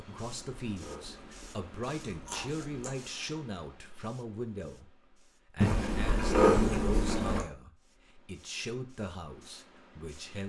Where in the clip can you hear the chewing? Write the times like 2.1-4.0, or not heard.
0.1-3.0, 5.6-7.5.